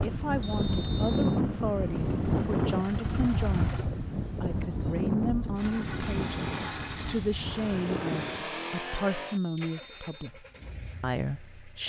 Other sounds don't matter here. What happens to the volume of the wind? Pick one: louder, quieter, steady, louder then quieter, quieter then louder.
quieter.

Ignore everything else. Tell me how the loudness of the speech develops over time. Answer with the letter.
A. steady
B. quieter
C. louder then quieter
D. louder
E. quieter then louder
A.